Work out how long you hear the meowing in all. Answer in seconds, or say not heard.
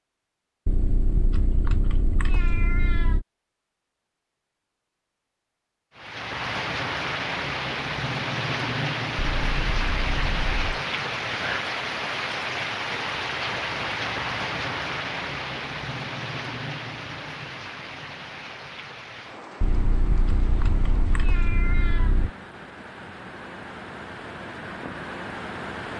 7 s.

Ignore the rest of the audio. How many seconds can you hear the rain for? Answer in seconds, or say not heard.
20 s.